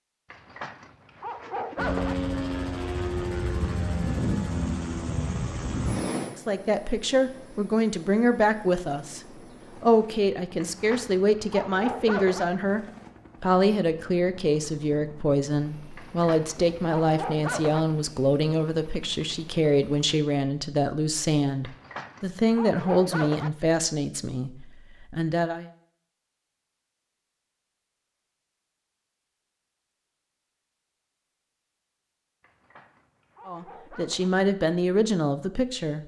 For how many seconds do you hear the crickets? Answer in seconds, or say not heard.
not heard.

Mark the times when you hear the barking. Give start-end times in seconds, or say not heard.
0.3-2.1, 10.6-12.4, 15.9-17.9, 21.6-23.5, 32.4-34.3.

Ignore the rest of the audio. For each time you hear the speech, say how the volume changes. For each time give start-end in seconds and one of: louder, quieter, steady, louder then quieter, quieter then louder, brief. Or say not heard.
6.2-9.2 brief
9.8-25.6 steady
33.5-36.0 brief.